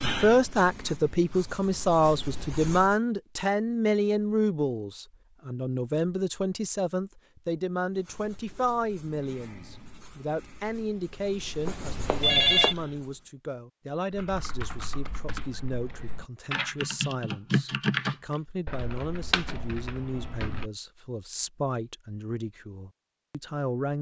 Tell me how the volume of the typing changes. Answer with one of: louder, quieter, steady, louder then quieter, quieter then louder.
louder then quieter.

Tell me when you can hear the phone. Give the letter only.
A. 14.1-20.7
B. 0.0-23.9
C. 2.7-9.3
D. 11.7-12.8
D.